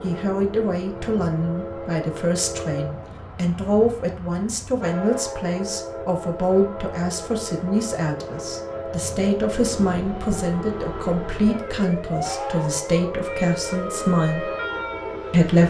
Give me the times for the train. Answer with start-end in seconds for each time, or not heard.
0.0-15.6.